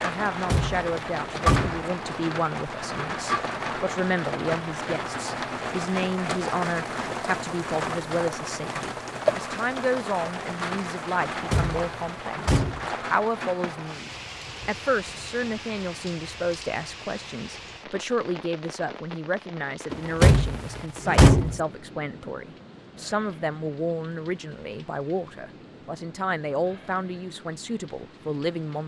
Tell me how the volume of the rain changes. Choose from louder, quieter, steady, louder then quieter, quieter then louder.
quieter.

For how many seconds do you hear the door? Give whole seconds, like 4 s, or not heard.
5 s.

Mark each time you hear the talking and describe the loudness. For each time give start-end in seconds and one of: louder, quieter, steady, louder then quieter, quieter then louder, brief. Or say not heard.
0.0-28.8 steady.